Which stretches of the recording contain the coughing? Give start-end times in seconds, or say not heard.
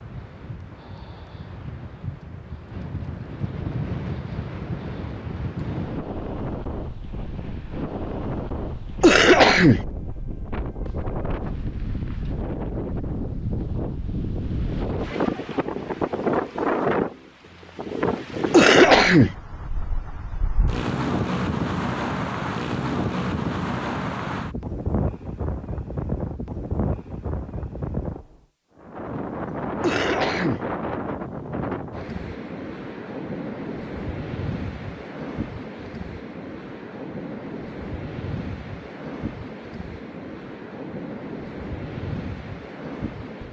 9.0-9.8, 18.5-19.4, 29.8-30.6.